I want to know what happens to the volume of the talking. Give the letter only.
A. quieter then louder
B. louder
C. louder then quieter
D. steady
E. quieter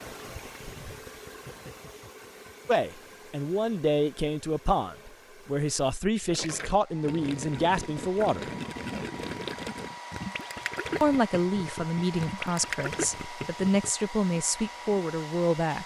D.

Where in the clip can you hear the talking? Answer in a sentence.
The talking can be heard from 2.6 to 8.5 s and from 11.0 to 15.8 s.